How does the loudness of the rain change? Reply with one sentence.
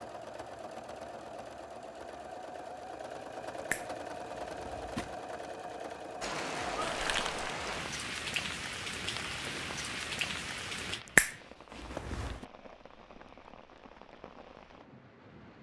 The loudness of the rain goes down.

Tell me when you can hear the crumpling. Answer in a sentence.
The crumpling can be heard from 6.8 to 7.5 s.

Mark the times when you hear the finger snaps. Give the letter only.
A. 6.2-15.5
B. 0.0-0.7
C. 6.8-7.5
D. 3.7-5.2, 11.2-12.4
D.